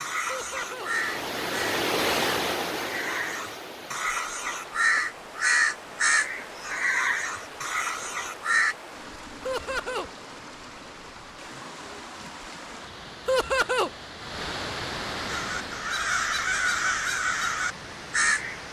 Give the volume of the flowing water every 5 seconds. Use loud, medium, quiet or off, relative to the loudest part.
loud, medium, medium, medium.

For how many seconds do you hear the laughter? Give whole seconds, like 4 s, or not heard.
2 s.